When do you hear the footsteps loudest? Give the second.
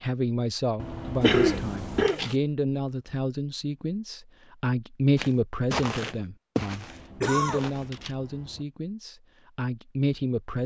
6 s.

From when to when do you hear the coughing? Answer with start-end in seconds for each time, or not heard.
1.2-2.4, 7.2-7.7.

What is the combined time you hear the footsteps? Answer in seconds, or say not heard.
3 s.